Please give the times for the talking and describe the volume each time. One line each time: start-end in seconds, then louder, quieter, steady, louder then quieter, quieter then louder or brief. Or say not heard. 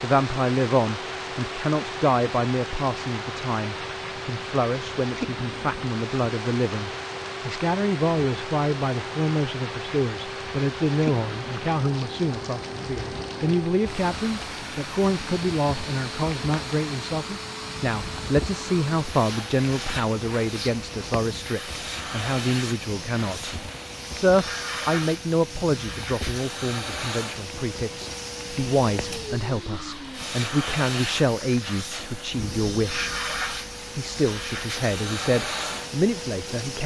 0.0-33.1 steady
34.0-36.8 brief.